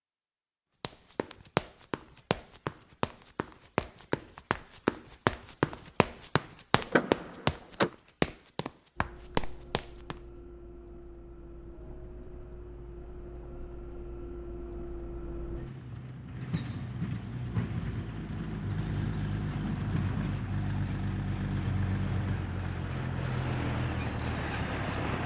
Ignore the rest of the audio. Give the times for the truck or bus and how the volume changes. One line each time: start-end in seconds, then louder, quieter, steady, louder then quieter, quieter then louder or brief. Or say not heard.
8.9-25.2 louder.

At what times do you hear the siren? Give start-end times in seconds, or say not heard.
not heard.